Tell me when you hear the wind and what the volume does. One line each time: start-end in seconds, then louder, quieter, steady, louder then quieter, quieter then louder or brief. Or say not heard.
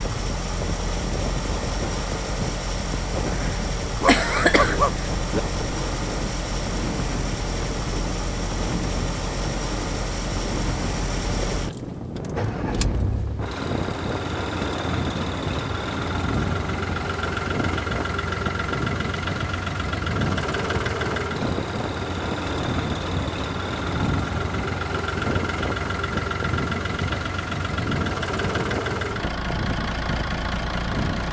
0.0-31.2 steady.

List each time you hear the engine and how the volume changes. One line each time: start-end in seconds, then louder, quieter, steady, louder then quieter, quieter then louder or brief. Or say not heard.
0.0-31.2 steady.